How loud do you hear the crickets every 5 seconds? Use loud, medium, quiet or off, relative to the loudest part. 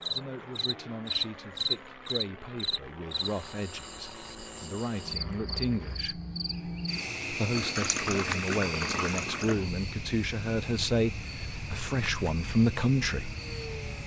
loud, loud, medium.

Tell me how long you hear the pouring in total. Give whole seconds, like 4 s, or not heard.
2 s.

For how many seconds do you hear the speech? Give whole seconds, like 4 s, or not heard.
12 s.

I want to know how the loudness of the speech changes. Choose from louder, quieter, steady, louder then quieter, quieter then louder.
louder.